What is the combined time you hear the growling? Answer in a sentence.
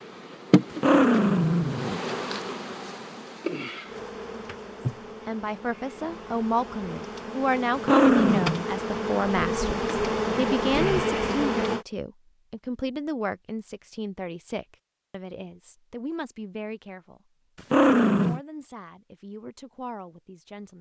You can hear the growling for 3 seconds altogether.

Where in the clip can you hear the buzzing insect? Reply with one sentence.
You can hear the buzzing insect from 0.0 to 11.8 s.